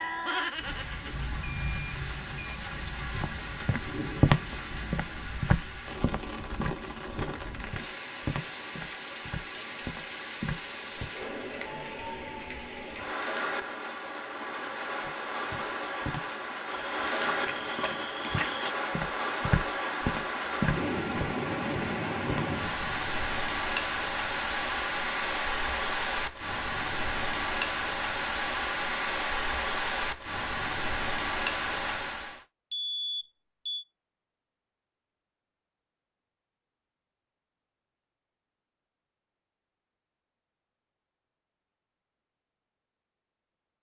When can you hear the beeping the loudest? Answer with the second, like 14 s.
33 s.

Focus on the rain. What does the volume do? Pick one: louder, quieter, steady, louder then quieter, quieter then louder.
louder.